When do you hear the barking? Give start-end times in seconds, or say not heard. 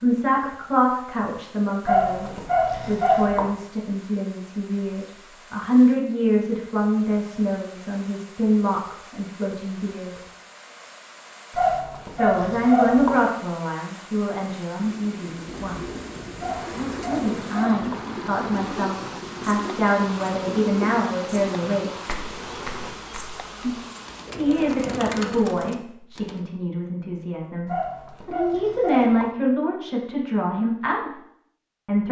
1.9-3.5, 11.5-13.2, 16.4-18.1, 27.6-29.3.